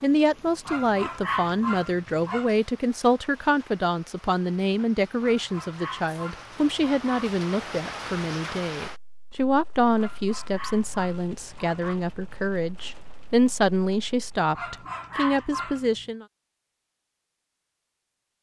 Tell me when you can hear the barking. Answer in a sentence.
You can hear the barking from 0.7 to 2.5 s, from 5.2 to 7.3 s, from 9.9 to 12.0 s and from 14.5 to 16.1 s.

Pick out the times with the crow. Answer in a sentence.
The crow can't be heard in this clip.